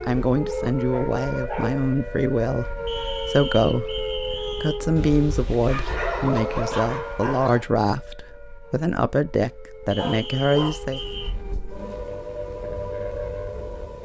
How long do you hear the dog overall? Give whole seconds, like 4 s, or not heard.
6 s.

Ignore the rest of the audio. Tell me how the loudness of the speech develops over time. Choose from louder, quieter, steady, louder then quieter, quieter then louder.
steady.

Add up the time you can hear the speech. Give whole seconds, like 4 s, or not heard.
11 s.